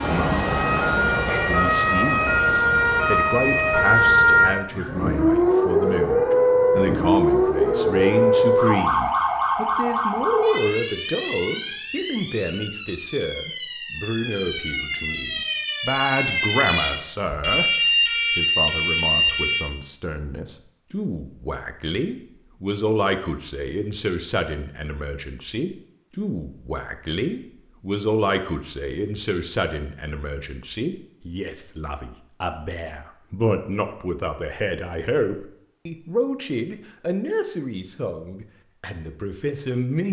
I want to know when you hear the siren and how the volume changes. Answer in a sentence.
You can hear the siren from 0.0 to 19.6 s, getting quieter then louder.